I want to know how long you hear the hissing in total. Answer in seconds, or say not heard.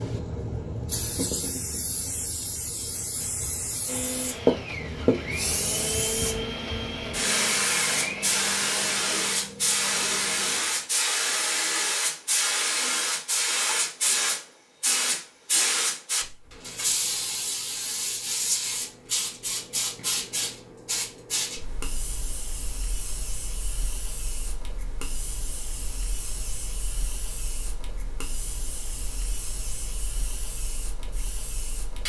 32 s.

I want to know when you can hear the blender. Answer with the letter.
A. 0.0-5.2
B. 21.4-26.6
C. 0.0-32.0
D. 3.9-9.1
D.